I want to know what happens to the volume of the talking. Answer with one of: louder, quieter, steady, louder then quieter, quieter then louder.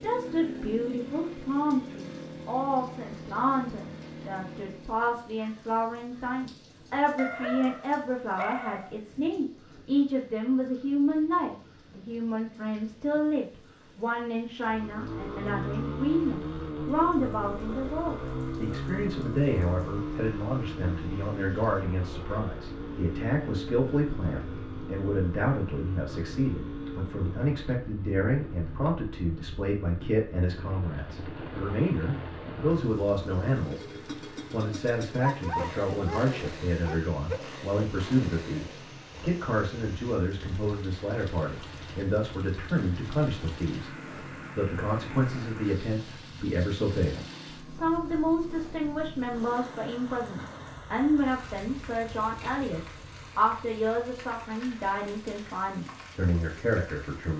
steady.